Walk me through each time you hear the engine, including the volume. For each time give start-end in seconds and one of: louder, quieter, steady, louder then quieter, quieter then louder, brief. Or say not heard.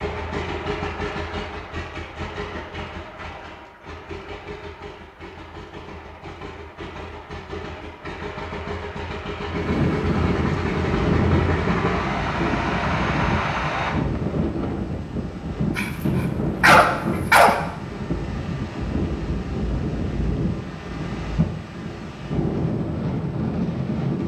0.0-14.0 quieter then louder.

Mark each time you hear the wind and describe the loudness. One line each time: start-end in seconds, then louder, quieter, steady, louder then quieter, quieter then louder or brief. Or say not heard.
9.5-24.2 steady.